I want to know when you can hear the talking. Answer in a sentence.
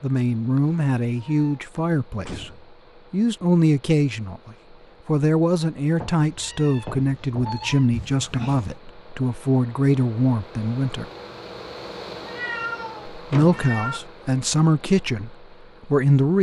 You can hear the talking from 0.0 to 2.5 s, from 3.1 to 11.1 s and from 13.2 to 16.3 s.